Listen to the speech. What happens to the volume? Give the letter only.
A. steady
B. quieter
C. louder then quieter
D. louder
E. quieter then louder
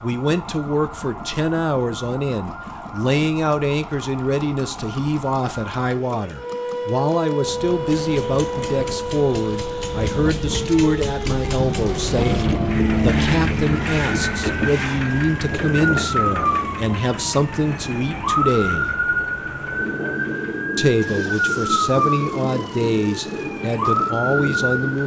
A.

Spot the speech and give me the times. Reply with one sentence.
The speech can be heard from 0.0 to 18.9 s and from 20.8 to 25.0 s.